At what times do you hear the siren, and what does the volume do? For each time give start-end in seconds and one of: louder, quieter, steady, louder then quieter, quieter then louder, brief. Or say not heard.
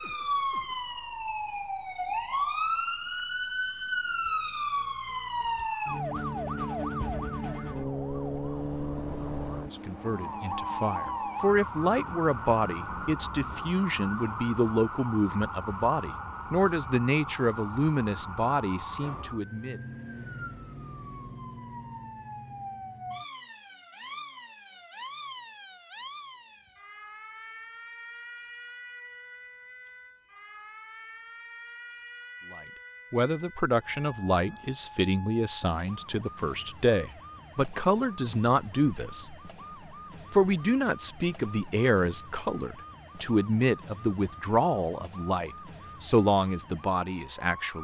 0.0-47.8 quieter.